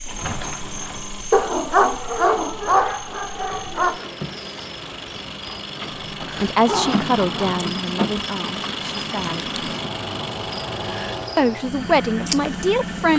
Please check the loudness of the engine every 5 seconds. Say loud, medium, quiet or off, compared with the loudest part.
medium, loud, loud.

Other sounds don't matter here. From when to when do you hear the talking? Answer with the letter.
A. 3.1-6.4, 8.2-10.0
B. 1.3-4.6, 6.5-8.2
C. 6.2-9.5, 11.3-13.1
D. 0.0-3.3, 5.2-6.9
C.